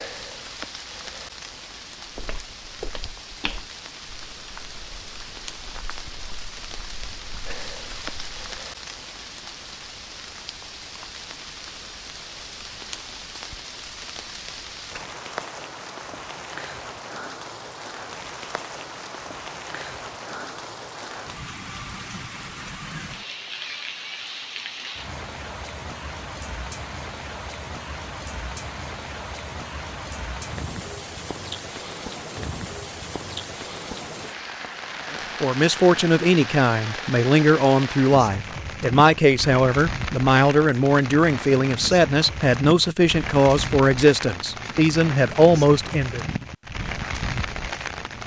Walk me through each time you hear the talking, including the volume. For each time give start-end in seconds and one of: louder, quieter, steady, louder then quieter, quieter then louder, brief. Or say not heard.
35.4-46.2 steady.